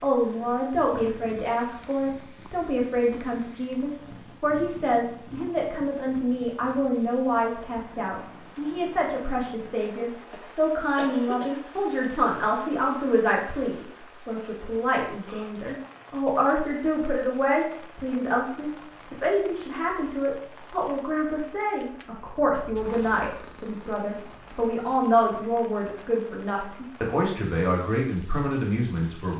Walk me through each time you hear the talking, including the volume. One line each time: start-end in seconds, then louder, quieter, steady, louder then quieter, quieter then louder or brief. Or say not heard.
0.0-29.3 steady.